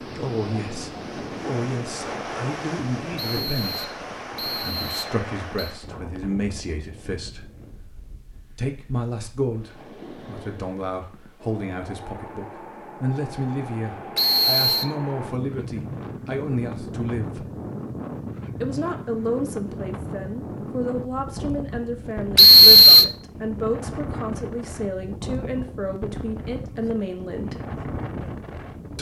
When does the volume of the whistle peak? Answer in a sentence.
The volume of the whistle peaks at 23 seconds.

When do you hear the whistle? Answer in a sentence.
You can hear the whistle from 3.1 to 5.8 s, from 14.2 to 14.8 s and from 22.4 to 23.1 s.